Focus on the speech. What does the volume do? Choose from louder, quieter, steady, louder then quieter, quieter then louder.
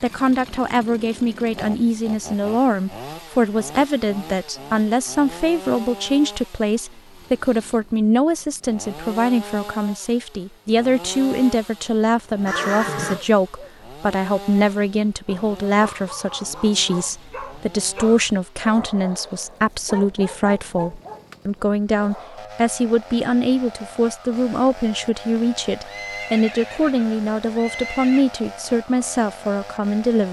steady.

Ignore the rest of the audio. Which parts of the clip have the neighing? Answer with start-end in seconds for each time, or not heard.
12.4-13.2, 25.9-28.2.